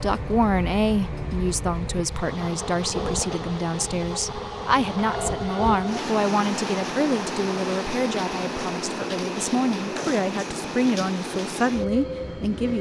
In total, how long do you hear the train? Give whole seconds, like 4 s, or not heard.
13 s.